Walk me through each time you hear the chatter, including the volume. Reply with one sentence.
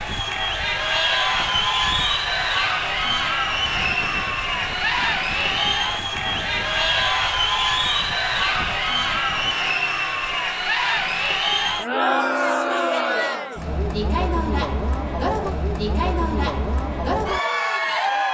The chatter can be heard from 0.0 to 18.2 s, at a steady volume.